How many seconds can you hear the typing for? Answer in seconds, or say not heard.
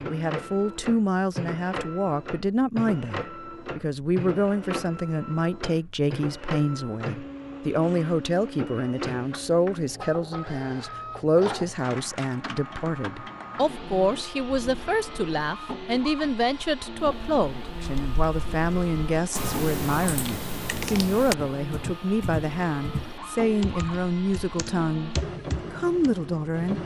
9 s.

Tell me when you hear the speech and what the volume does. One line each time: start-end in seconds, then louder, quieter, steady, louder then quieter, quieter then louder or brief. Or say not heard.
0.1-25.1 steady
25.7-26.8 brief.